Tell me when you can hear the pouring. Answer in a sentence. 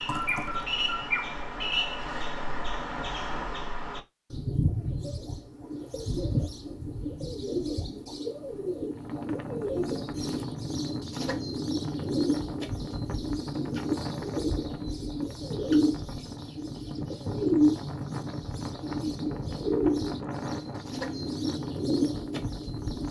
You can hear the pouring from 0.1 to 0.7 s.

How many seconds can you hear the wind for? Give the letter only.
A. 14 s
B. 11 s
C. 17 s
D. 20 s
A.